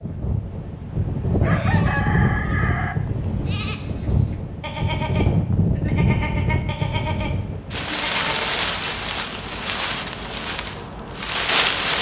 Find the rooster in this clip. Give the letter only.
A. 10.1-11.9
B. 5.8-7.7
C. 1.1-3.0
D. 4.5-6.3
C.